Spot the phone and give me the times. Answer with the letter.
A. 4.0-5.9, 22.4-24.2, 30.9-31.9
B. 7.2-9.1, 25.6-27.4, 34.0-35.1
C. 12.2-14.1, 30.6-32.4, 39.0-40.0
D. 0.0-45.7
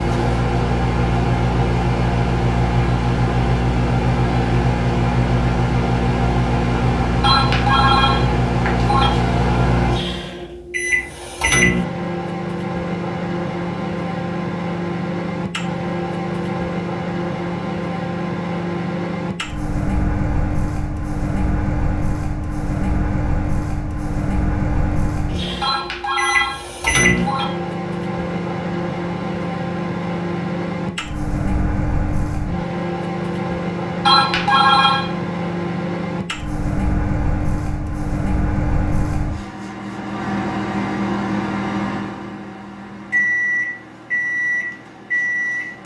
B.